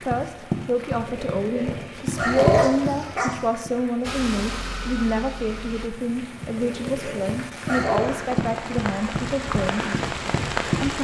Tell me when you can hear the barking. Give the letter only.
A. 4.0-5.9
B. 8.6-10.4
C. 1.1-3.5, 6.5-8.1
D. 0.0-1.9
C.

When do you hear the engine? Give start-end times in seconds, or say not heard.
4.0-5.9.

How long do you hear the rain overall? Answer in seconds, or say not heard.
11 s.